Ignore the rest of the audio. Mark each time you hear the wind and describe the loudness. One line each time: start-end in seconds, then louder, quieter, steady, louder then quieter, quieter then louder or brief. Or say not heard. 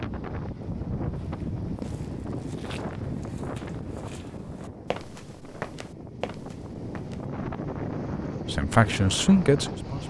0.0-10.0 quieter then louder.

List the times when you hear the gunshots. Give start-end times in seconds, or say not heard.
not heard.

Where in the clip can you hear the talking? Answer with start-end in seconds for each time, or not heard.
8.4-10.0.